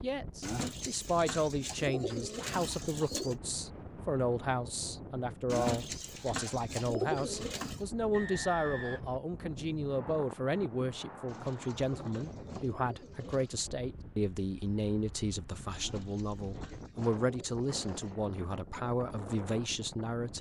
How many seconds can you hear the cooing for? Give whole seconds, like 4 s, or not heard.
10 s.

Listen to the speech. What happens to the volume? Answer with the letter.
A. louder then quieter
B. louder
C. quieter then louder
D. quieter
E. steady
E.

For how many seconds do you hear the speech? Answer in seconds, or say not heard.
20 s.